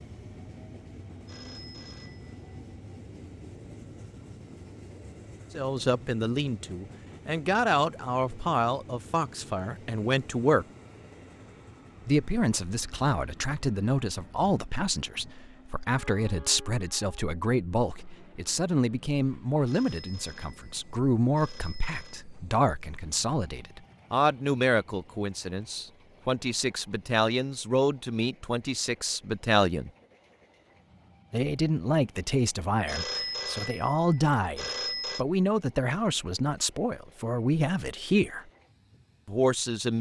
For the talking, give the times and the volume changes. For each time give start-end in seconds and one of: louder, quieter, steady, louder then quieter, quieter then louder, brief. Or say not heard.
5.5-10.7 steady
12.1-29.9 steady
31.3-38.5 steady
39.2-39.9 brief.